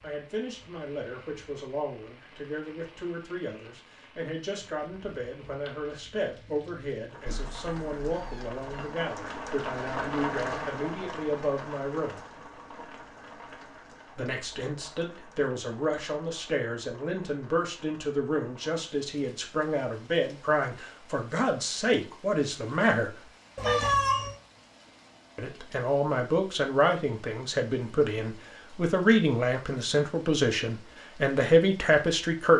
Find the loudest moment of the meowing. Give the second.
24 s.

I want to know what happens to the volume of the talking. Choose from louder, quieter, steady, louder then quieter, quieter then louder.
louder.